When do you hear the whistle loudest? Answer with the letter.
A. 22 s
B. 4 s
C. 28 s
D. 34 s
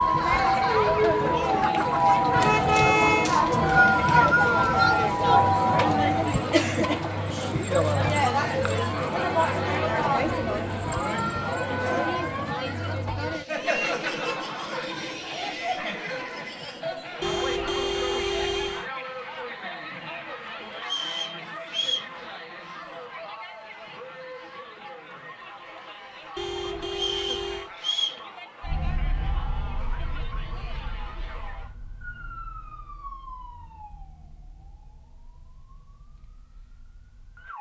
B.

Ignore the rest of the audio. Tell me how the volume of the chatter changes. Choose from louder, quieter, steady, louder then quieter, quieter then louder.
quieter.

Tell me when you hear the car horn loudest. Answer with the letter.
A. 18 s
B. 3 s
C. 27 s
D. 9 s
B.